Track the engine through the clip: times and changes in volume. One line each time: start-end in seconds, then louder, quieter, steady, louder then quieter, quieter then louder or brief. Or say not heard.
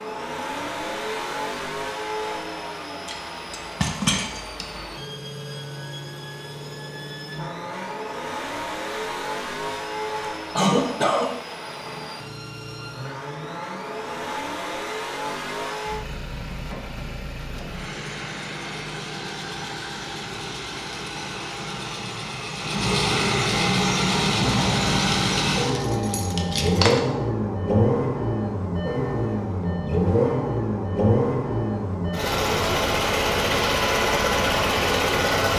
0.0-35.5 louder.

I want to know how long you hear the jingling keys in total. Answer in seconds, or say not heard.
4 s.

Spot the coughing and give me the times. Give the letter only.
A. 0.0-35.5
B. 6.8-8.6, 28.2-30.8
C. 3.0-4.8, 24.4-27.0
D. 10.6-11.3
D.